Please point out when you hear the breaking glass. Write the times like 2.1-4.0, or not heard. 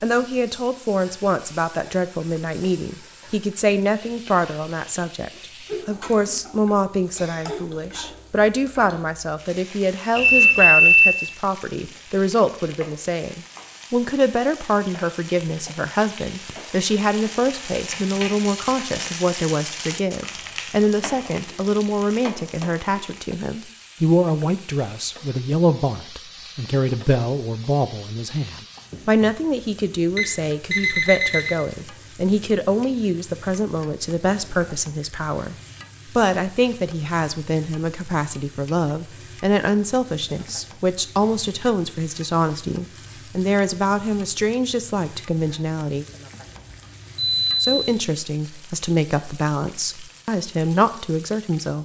not heard.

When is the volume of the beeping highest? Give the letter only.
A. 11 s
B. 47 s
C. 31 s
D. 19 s
A.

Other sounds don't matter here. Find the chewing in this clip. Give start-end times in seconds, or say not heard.
not heard.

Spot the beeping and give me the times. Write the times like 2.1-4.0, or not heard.
10.2-11.2, 30.1-31.6, 46.5-47.6.